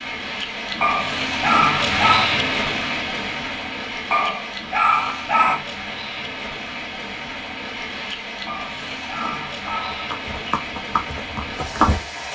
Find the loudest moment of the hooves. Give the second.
12 s.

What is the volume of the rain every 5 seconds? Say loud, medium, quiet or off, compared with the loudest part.
loud, medium, medium.